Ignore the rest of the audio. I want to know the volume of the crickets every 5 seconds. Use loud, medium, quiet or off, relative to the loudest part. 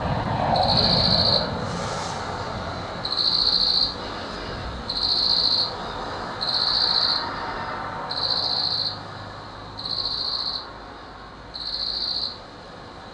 loud, loud, medium.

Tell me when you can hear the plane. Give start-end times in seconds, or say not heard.
0.0-3.2.